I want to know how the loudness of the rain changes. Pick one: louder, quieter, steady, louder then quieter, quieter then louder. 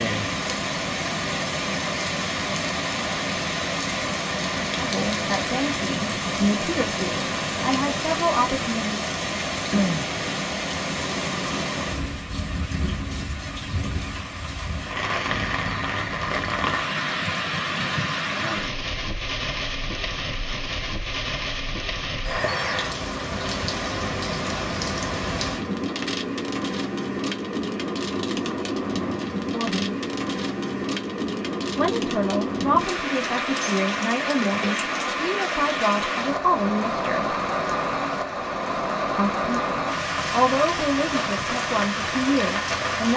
steady.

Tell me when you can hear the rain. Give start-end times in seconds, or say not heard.
0.0-43.1.